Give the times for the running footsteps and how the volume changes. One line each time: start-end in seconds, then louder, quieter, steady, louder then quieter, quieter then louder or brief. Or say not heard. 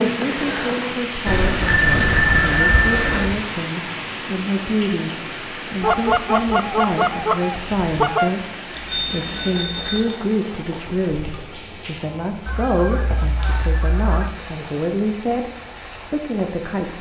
not heard.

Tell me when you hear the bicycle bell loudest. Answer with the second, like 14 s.
2 s.